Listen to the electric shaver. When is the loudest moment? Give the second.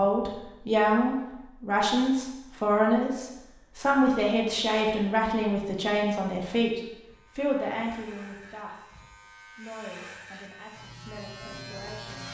12 s.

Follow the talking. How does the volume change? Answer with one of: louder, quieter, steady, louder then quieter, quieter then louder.
quieter.